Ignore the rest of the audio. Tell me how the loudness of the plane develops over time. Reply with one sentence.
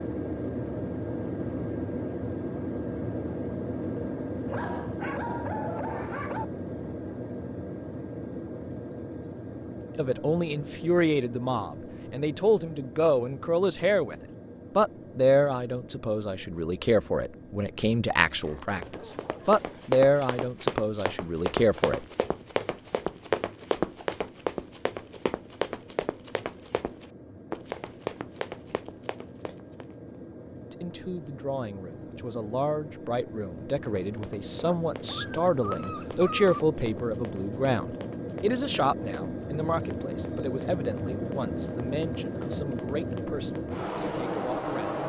The volume of the plane goes down, then up.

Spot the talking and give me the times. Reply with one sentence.
The talking can be heard from 9.9 to 14.2 s, from 14.8 to 22.0 s and from 30.6 to 45.0 s.